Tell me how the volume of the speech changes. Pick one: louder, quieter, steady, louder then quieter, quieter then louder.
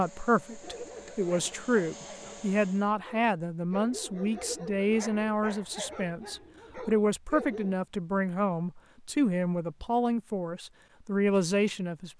steady.